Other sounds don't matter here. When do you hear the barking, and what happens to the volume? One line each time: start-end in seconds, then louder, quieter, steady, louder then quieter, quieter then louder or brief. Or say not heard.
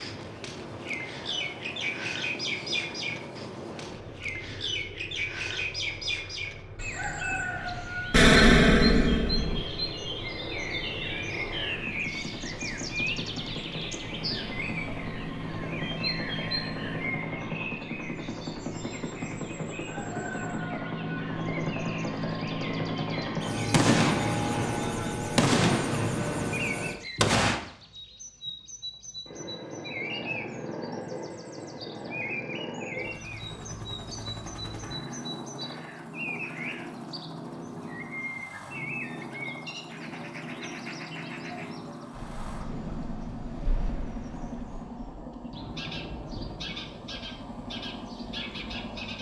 not heard.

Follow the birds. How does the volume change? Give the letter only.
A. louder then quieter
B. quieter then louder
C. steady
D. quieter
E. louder
D.